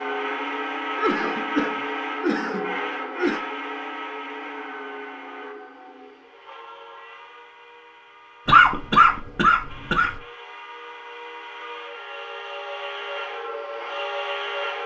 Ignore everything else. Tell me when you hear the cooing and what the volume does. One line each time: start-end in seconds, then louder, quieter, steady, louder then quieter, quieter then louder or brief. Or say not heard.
not heard.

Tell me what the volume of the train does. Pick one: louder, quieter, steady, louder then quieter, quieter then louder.
quieter then louder.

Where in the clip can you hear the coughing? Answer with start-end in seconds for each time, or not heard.
0.9-3.4, 8.4-10.2.